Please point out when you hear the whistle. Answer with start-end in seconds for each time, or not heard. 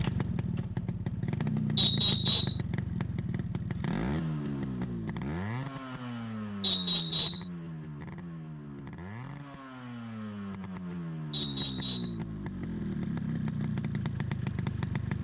1.8-2.6, 6.6-7.5, 11.3-12.2.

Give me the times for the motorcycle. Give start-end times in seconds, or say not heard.
0.0-15.2.